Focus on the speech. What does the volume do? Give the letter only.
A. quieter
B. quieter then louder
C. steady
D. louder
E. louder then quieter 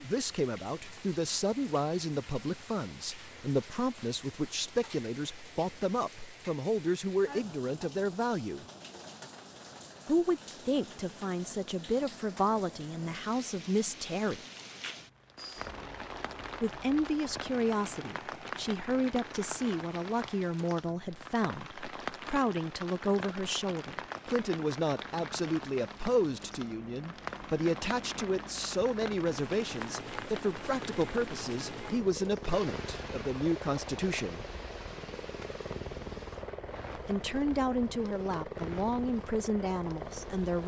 C.